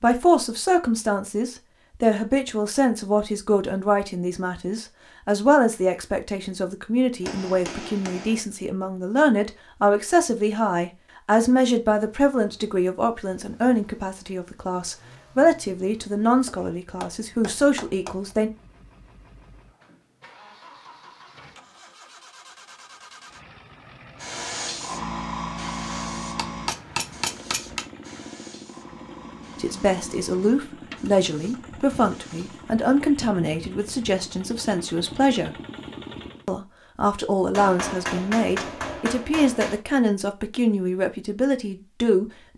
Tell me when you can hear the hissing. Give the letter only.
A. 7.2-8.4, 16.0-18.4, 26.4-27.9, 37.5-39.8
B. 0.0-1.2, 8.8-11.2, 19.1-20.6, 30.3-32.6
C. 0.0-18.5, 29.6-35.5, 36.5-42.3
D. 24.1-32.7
D.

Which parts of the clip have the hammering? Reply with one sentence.
You can hear the hammering from 7.2 to 8.4 s, from 16.0 to 18.4 s, from 26.4 to 27.9 s and from 37.5 to 39.8 s.